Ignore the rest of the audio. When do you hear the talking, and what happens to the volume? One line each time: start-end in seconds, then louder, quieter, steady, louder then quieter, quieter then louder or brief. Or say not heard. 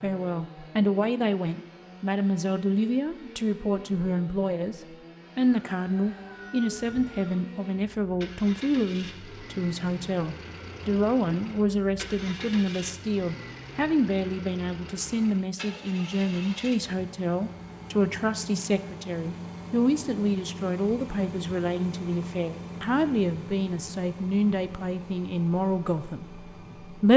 0.0-27.1 steady.